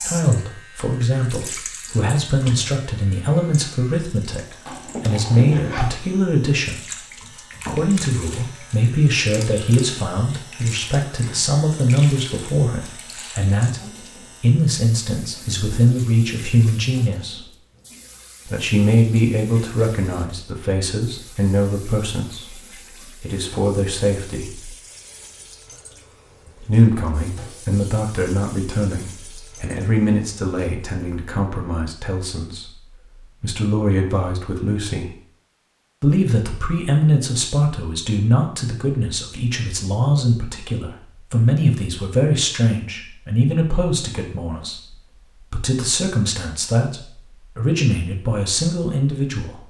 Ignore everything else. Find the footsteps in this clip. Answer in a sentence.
You can't hear the footsteps here.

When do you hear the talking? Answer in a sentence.
The talking can be heard from 0.0 to 6.8 s, from 7.7 to 17.4 s, from 18.4 to 24.7 s, from 26.6 to 35.1 s and from 36.0 to 49.6 s.